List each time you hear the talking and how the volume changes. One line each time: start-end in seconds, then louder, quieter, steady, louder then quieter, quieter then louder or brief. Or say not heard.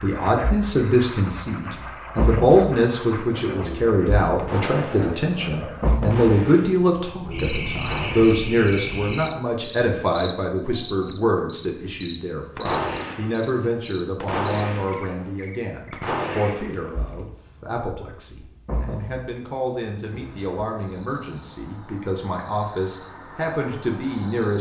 0.0-24.5 quieter.